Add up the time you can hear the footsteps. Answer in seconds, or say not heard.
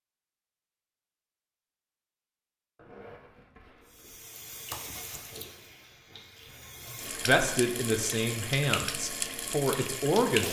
not heard.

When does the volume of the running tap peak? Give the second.
10 s.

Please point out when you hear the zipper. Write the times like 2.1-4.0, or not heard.
2.8-4.2.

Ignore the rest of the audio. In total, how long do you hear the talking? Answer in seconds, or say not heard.
3 s.